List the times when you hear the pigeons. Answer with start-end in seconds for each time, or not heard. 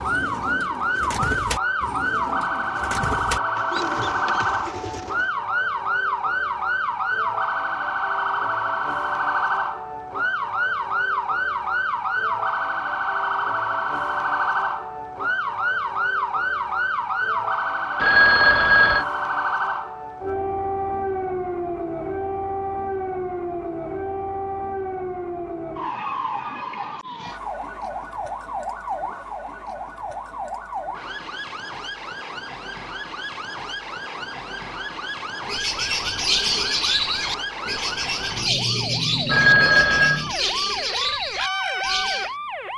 0.0-5.3, 35.5-42.4.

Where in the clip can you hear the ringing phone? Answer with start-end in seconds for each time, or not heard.
17.9-19.1, 39.2-40.2.